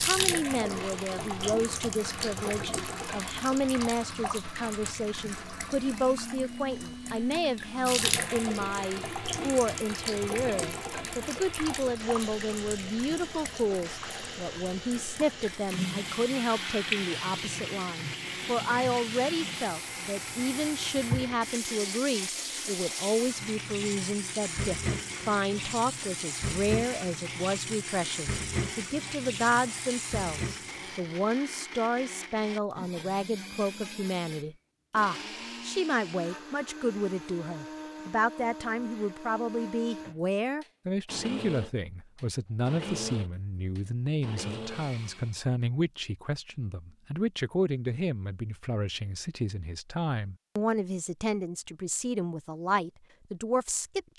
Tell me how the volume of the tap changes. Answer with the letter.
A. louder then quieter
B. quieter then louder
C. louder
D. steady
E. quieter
D.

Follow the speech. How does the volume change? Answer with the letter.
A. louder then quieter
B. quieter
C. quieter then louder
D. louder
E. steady
E.